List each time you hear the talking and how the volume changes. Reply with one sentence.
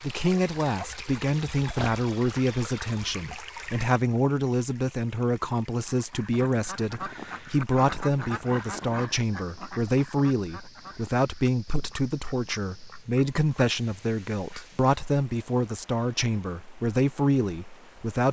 You can hear the talking from 0.0 to 18.2 s, at a steady volume.